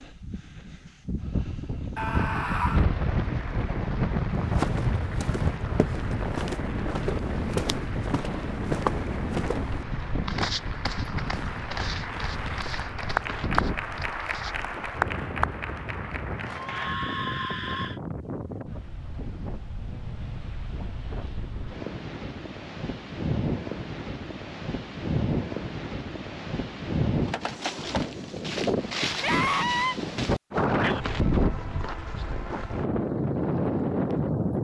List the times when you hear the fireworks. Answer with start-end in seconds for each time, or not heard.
not heard.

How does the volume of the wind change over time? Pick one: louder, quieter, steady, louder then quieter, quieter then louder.
quieter then louder.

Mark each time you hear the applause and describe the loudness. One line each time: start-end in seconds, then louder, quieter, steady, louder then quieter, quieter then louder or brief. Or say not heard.
2.1-16.9 louder.